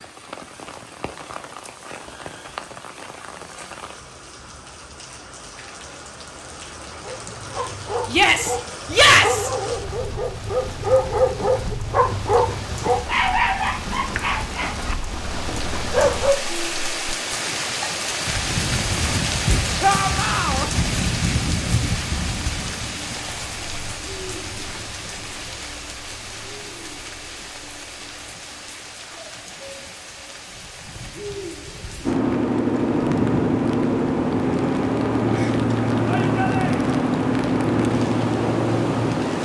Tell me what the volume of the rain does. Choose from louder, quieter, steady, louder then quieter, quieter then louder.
louder then quieter.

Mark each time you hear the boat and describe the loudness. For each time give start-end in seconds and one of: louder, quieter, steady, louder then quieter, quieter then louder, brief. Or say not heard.
32.0-39.3 steady.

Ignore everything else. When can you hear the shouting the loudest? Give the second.
9 s.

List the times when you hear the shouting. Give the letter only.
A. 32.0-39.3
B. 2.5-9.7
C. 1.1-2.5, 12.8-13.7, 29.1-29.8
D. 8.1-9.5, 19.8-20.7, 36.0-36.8
D.